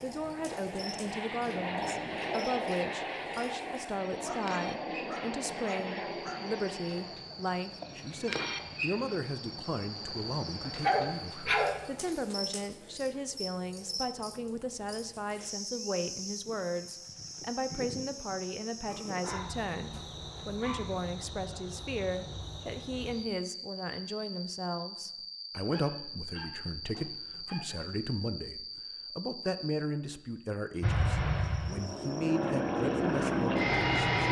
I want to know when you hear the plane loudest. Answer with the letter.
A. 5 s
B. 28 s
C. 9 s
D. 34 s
D.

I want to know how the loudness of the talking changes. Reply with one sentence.
The loudness of the talking stays about the same.